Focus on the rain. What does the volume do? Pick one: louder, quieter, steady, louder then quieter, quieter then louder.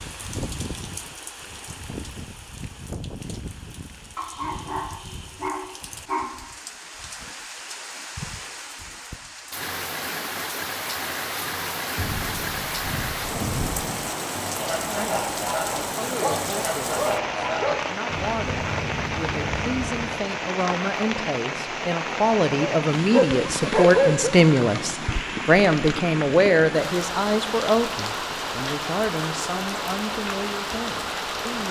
louder.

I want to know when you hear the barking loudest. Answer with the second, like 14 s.
24 s.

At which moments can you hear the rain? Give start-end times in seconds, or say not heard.
0.0-31.6.